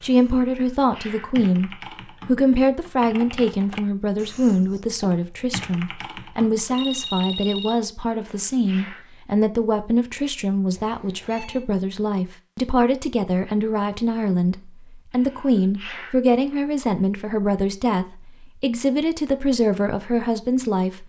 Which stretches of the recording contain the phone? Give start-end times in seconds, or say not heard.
6.7-7.8, 10.8-11.7.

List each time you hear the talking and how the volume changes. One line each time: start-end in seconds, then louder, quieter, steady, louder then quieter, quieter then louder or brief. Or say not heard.
0.0-21.0 steady.